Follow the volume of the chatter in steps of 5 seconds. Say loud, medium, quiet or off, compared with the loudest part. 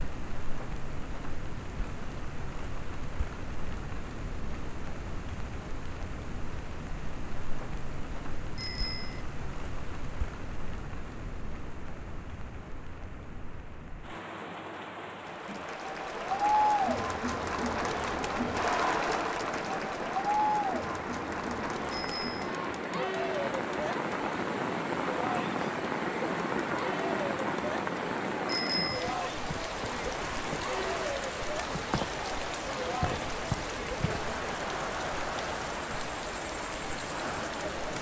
off, off, off, loud, loud, medium, medium, medium.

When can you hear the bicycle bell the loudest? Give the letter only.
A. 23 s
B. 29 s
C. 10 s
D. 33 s
B.